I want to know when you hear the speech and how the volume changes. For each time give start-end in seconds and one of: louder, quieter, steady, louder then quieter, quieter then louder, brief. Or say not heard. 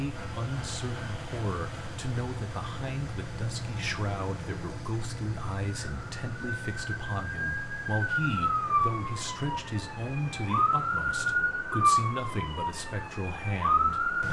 0.0-14.2 steady.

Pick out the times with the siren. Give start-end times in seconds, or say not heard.
5.7-14.2.